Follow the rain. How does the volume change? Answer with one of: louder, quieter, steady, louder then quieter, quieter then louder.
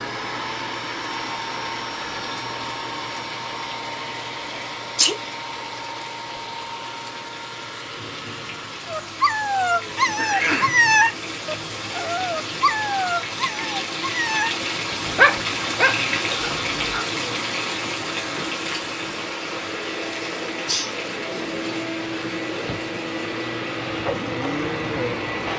louder then quieter.